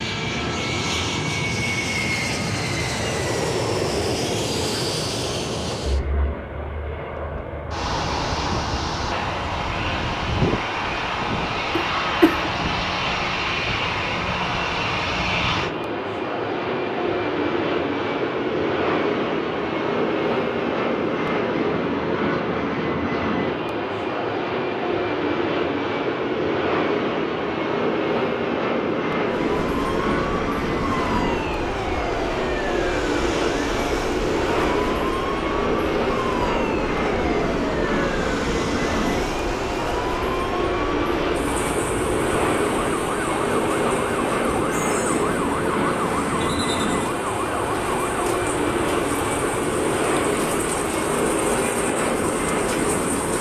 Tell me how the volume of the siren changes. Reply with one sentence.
The loudness of the siren stays about the same.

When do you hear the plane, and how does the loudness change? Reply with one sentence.
You can hear the plane from 0.0 to 53.3 s, at a steady volume.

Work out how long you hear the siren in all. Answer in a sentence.
The siren can be heard for 24 seconds in total.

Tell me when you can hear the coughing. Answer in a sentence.
The coughing can be heard from 11.7 to 12.6 s.